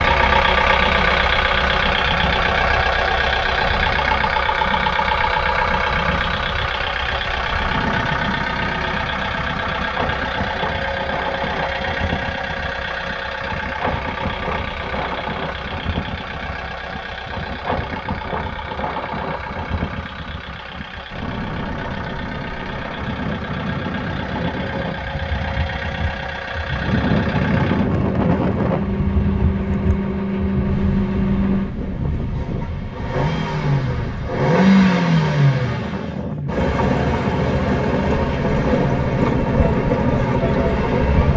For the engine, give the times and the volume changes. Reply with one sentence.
You can hear the engine from 0.0 to 41.3 s, getting quieter then louder.